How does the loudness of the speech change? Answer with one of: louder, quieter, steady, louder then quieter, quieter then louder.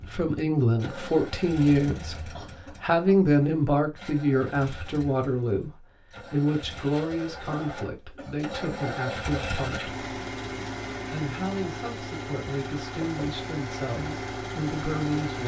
quieter.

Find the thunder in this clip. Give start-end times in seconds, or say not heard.
not heard.